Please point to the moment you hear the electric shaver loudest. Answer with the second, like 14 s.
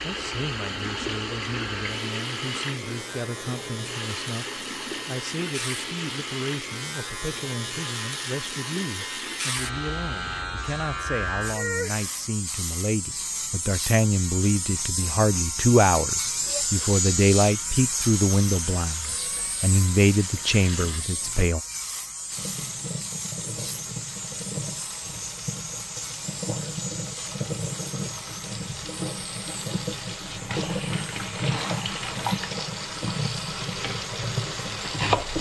17 s.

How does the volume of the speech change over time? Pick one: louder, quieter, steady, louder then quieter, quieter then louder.
louder.